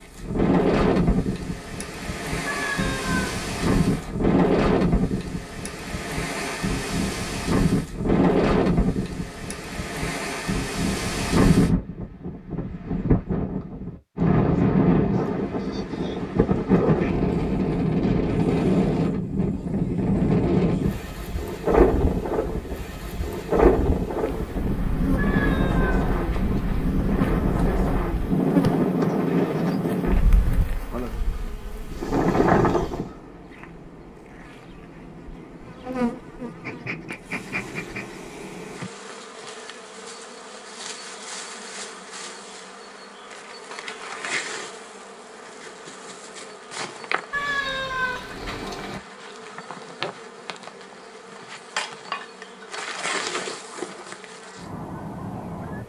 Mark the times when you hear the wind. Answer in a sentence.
You can hear the wind from 0.0 to 33.1 s.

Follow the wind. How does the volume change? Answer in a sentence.
The loudness of the wind stays about the same.